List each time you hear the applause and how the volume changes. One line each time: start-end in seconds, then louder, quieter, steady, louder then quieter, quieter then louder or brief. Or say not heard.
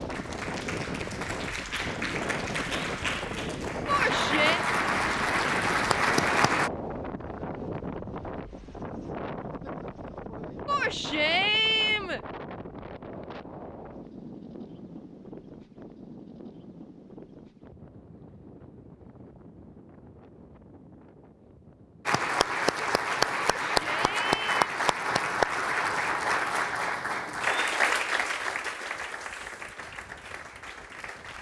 0.0-6.7 louder
22.1-31.3 quieter.